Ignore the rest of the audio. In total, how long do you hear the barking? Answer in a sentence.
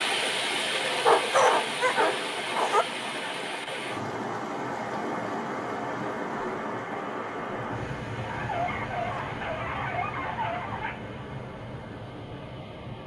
You can hear the barking for 5 seconds altogether.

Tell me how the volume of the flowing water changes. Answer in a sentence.
The volume of the flowing water goes down.